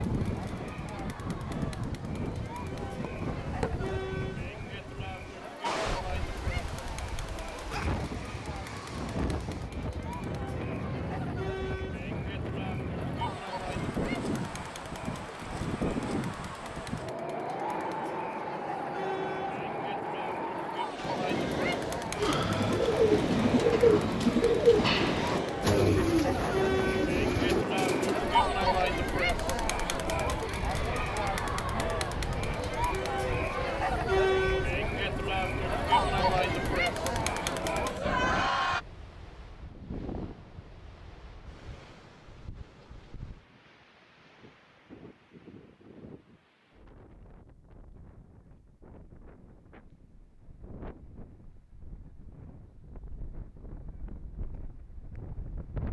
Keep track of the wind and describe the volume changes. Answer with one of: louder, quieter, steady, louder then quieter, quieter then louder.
quieter.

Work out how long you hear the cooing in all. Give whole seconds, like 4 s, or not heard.
6 s.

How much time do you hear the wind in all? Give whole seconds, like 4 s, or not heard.
56 s.